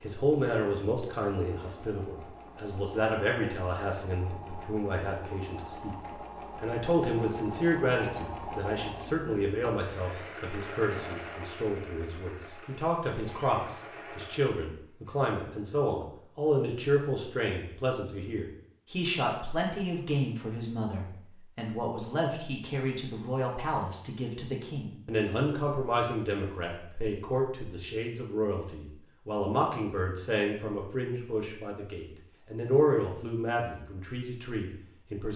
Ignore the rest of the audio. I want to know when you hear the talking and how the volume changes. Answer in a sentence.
You can hear the talking from 0.0 to 35.3 s, at a steady volume.